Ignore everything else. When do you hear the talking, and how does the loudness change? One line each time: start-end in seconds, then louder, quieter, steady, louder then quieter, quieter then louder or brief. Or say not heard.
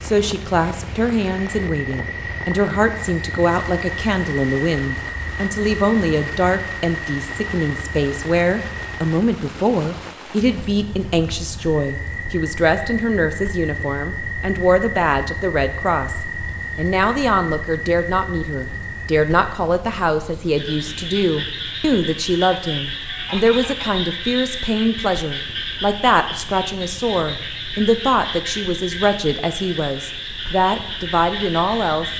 0.0-32.1 steady.